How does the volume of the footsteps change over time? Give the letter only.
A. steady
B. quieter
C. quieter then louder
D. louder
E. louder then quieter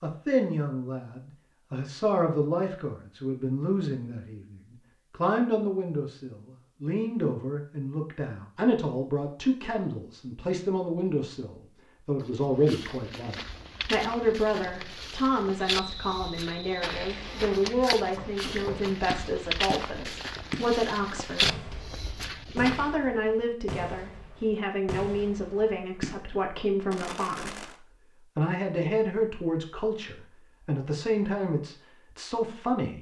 D.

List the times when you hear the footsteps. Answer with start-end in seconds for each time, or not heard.
12.2-22.9.